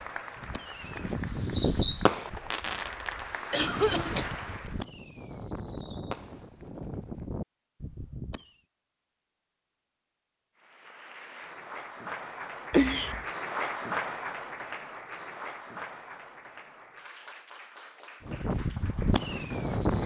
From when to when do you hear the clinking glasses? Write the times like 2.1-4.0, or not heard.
not heard.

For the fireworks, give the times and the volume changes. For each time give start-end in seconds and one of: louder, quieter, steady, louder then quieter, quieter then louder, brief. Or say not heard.
0.3-8.6 quieter
18.2-20.0 brief.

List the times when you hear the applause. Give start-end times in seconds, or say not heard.
0.0-4.8, 10.6-20.0.